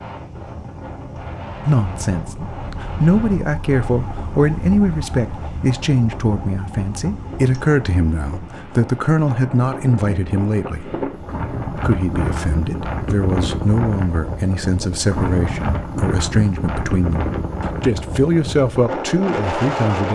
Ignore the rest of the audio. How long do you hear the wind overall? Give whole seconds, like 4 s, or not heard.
20 s.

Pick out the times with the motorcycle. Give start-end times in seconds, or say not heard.
not heard.